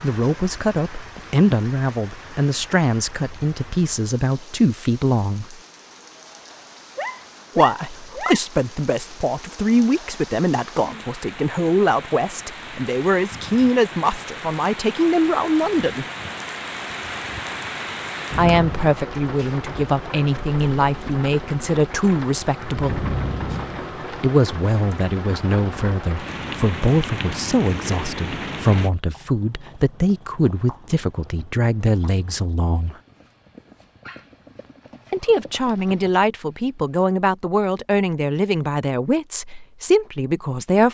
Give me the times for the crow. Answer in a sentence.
The crow can't be heard in this clip.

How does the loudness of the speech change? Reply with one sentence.
The loudness of the speech stays about the same.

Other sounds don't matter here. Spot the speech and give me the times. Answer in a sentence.
You can hear the speech from 0.0 to 5.6 s, from 7.5 to 16.1 s, from 18.4 to 23.1 s, from 24.2 to 33.0 s and from 35.1 to 40.8 s.